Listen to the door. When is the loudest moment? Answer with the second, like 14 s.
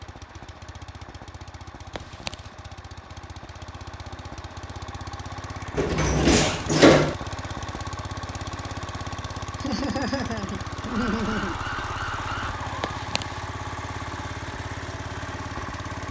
7 s.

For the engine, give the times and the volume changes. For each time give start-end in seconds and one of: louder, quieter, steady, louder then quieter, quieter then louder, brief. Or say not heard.
0.0-16.0 louder.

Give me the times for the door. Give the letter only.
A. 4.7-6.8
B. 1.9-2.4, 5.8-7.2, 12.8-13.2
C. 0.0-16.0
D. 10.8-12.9
B.